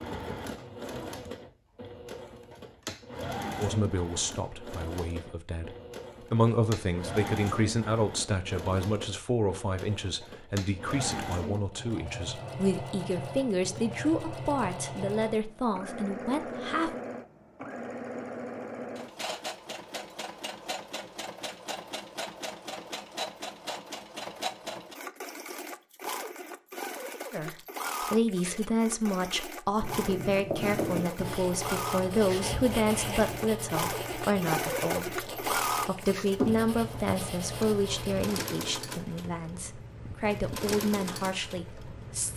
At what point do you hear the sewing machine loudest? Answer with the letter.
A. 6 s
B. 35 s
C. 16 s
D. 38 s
B.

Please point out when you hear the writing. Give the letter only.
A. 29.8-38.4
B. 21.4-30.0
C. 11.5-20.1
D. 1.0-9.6
A.